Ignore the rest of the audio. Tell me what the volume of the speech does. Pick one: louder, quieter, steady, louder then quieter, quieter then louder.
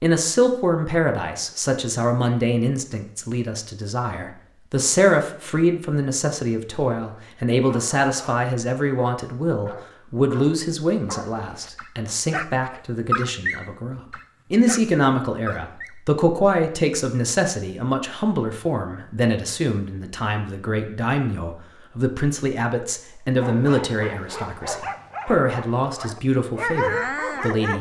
steady.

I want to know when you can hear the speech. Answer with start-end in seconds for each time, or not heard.
0.0-27.7.